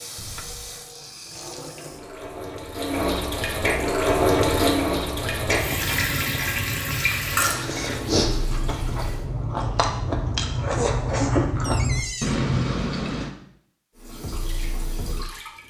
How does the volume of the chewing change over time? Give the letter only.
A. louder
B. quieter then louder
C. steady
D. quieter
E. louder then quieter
A.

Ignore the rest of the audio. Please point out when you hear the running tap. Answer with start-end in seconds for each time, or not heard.
0.0-9.2, 13.9-15.6.